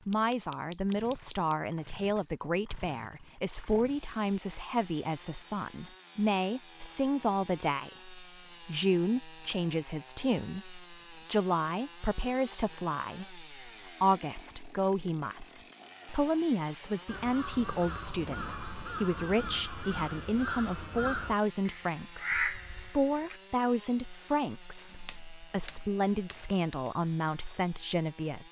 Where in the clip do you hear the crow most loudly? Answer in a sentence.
The volume of the crow peaks at 22 seconds.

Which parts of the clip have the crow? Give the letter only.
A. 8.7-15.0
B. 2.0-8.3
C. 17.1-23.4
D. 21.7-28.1
C.